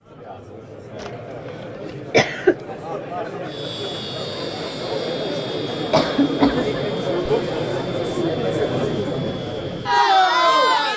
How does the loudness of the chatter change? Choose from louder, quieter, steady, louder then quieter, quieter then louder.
louder.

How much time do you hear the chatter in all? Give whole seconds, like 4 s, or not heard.
11 s.